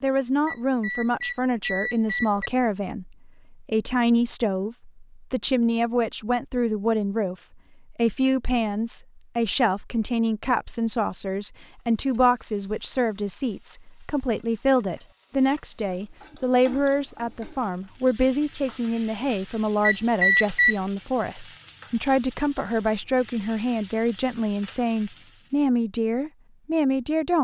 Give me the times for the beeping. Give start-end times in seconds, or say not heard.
0.5-2.5, 19.8-20.8.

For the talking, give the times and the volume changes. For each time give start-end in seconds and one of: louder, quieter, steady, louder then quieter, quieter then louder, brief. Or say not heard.
0.0-27.3 steady.